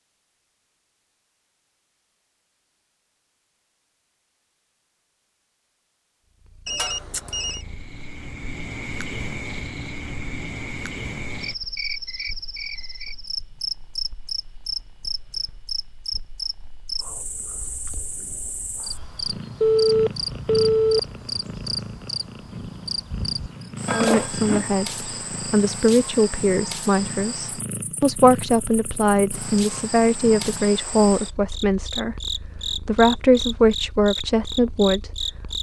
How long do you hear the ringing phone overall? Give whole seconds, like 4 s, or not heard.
3 s.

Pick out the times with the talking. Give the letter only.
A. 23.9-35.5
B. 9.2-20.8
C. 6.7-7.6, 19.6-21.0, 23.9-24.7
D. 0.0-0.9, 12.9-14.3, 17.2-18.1
A.